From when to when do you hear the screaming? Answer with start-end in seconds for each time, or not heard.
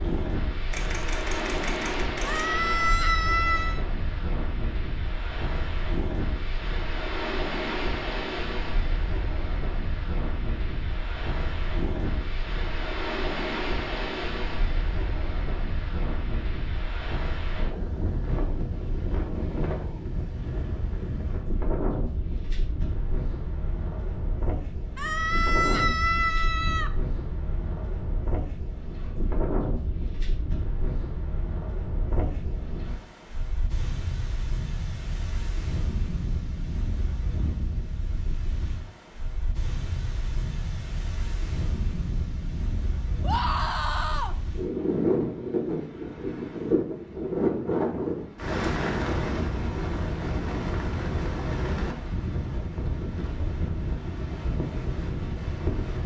2.2-3.9, 24.9-26.9, 43.2-44.4.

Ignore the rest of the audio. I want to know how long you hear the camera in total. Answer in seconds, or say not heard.
2 s.